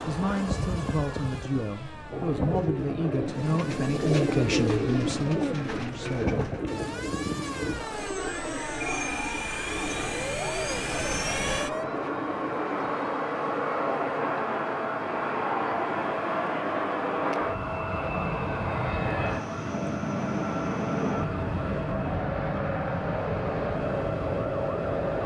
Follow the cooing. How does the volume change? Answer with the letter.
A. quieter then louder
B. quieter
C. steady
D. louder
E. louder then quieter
B.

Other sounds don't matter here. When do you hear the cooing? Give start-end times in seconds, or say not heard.
2.1-12.9.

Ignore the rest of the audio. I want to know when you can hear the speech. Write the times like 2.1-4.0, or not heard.
0.0-6.5.